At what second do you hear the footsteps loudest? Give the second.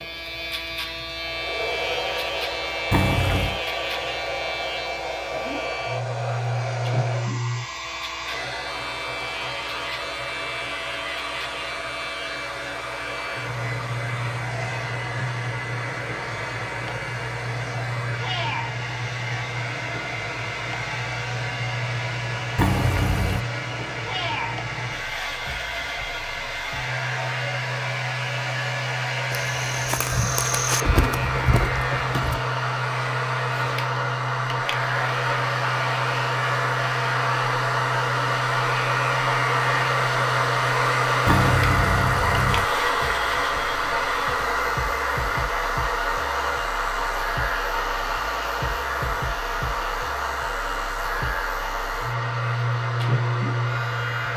31 s.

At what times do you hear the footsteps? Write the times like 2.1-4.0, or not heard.
29.3-32.4.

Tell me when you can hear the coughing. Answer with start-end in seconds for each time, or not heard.
30.8-32.0.